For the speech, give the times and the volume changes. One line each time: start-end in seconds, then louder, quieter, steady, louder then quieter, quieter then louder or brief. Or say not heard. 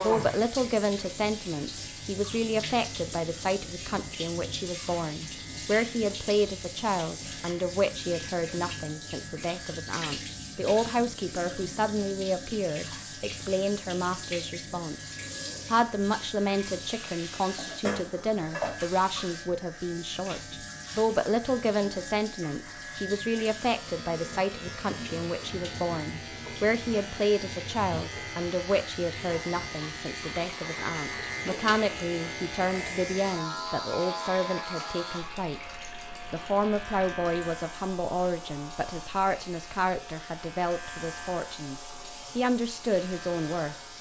0.0-43.8 steady.